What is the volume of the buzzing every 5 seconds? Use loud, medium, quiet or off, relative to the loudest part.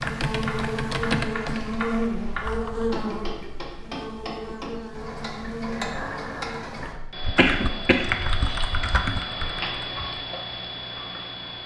loud, medium, off.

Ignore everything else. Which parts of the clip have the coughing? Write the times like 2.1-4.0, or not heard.
7.3-8.6.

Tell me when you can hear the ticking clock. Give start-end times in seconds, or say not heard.
0.0-11.6.